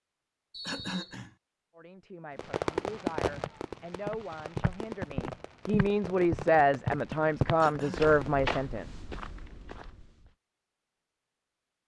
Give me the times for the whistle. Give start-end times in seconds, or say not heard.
0.5-1.2.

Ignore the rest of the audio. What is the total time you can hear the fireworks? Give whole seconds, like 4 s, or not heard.
6 s.